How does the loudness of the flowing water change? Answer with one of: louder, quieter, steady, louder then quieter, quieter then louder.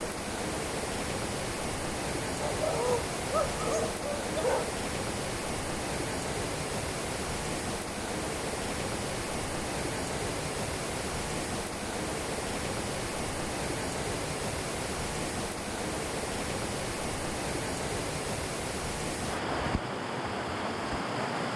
steady.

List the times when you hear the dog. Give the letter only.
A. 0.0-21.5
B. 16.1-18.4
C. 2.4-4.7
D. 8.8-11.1
C.